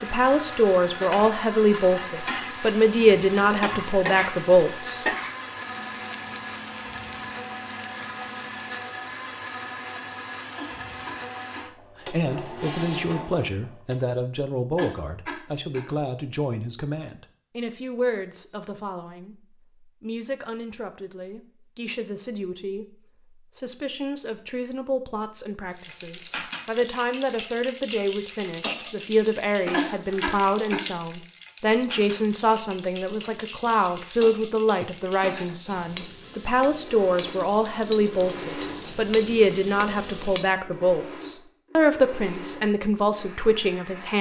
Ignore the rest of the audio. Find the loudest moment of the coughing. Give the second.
30 s.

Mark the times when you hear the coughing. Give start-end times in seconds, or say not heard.
10.6-11.7, 14.8-15.8, 29.7-30.8.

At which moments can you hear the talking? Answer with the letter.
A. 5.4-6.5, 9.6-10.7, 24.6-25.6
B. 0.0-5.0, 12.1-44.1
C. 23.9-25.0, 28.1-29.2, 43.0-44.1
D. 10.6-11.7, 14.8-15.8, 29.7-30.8
B.